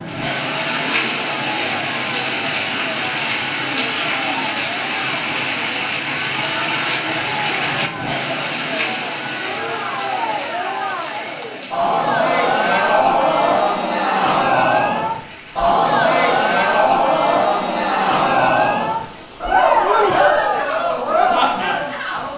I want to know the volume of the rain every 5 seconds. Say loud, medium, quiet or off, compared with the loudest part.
loud, loud, quiet, quiet, quiet.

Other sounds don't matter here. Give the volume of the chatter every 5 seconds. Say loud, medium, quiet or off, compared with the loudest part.
quiet, quiet, loud, loud, loud.